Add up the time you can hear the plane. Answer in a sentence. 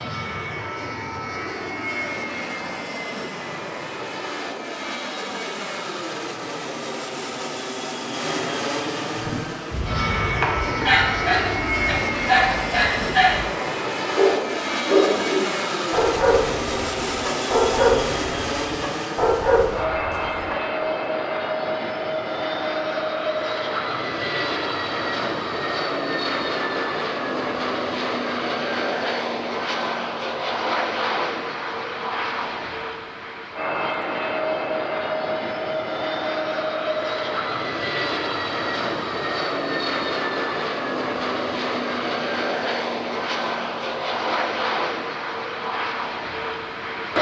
You can hear the plane for 47 seconds altogether.